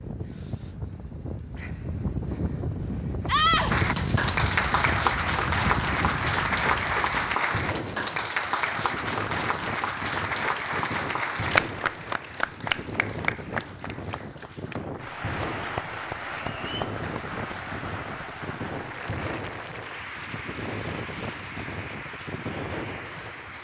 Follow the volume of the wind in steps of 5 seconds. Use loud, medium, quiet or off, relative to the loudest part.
loud, loud, medium, medium, medium.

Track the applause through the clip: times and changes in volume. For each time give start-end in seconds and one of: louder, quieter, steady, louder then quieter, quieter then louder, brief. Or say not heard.
3.7-23.5 quieter.